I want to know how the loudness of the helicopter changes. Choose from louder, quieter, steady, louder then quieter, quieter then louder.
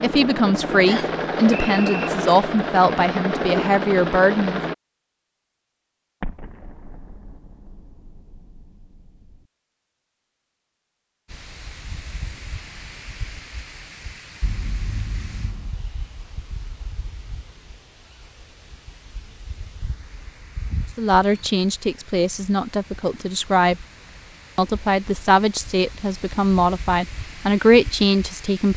steady.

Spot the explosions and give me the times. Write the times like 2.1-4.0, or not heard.
6.2-9.4, 14.4-15.8.